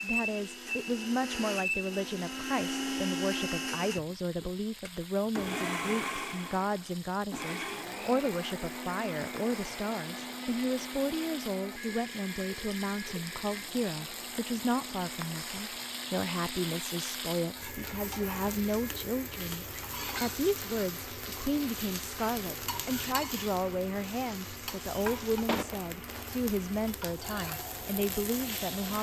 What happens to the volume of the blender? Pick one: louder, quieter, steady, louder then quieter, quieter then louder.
quieter.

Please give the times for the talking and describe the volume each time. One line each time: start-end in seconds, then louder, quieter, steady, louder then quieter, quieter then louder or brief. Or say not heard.
0.0-28.9 steady.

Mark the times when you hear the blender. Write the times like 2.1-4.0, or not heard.
0.0-28.9.